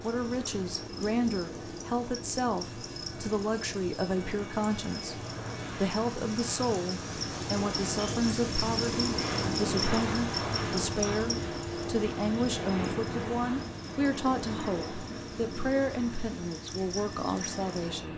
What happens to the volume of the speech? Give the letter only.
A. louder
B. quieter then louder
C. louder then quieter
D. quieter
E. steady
E.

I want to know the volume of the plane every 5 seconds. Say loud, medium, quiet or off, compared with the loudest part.
medium, loud, loud, medium.